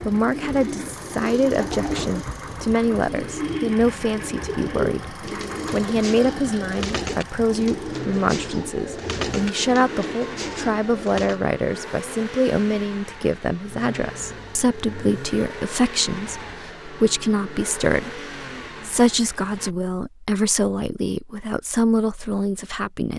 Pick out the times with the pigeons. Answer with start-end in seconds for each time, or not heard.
0.0-11.4.